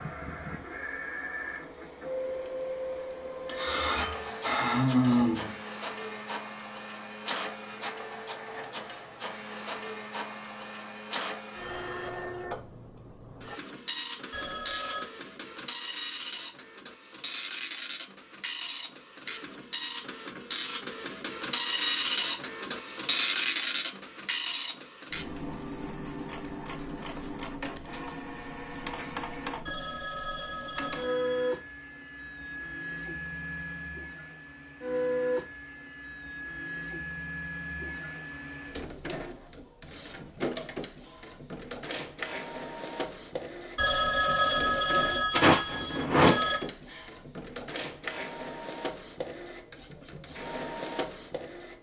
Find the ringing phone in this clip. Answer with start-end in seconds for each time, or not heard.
14.3-15.1, 29.6-31.6, 43.8-46.6.